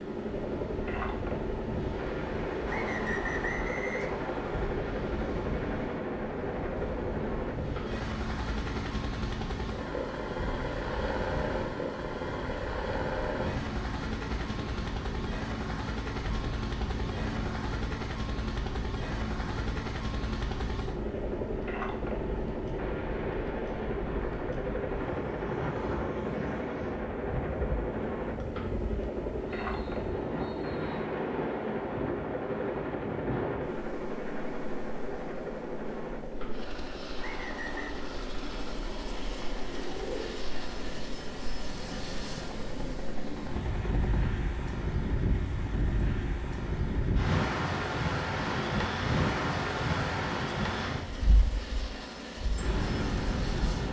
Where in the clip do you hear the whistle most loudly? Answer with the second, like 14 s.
3 s.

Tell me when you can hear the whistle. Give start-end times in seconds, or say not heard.
2.6-4.7, 28.4-31.1, 37.1-38.0.